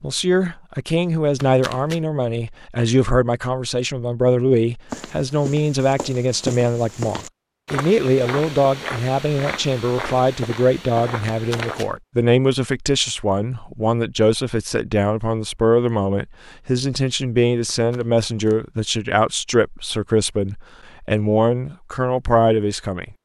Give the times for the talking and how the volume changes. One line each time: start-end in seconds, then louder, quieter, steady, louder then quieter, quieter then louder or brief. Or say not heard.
0.0-23.1 steady.